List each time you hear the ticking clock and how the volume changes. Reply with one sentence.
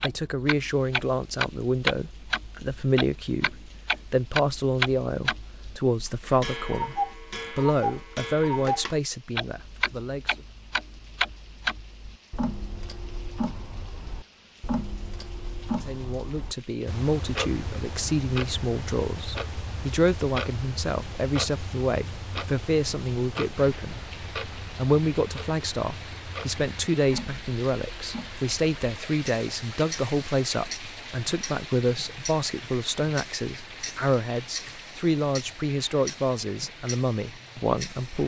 You can hear the ticking clock from 0.0 to 38.2 s, getting quieter.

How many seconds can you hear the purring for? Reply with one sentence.
The purring can't be heard in this clip.